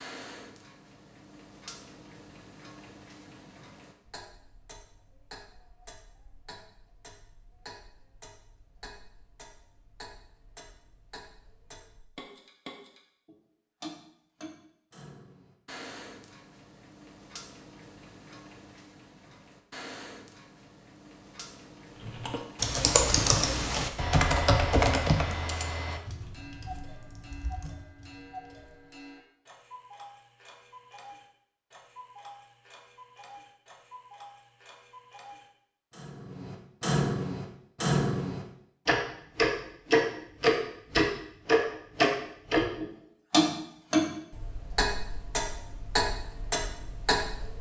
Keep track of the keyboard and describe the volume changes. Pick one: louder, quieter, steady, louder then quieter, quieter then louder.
quieter.